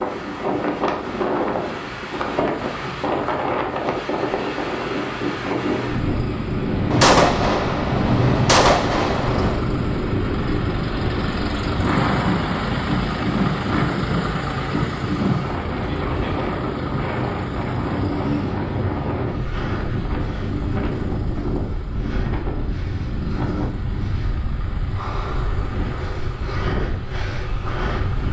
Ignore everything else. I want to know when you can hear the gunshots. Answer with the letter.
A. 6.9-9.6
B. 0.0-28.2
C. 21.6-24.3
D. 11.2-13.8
A.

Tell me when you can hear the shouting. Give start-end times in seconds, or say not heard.
not heard.